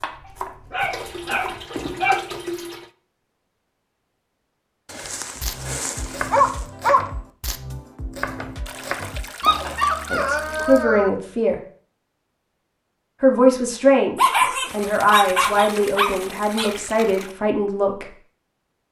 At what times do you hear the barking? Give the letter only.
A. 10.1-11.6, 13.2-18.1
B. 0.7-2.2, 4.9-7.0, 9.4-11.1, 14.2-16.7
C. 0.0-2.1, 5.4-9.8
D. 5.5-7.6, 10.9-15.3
B.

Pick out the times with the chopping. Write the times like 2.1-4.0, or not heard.
0.0-2.1, 5.4-9.8.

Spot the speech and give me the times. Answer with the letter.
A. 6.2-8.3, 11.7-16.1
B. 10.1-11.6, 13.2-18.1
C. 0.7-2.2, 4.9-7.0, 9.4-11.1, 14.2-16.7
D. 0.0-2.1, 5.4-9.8
B.